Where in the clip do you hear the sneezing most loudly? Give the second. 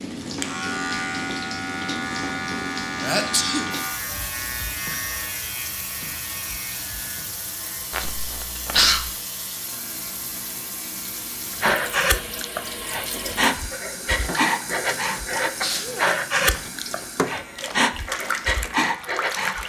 9 s.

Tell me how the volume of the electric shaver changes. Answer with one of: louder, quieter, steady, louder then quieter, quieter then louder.
quieter.